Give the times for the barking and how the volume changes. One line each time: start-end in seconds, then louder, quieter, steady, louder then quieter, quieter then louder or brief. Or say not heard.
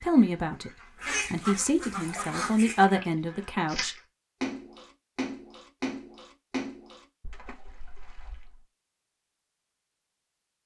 not heard.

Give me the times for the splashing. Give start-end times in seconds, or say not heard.
1.9-8.6.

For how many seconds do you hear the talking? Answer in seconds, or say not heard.
3 s.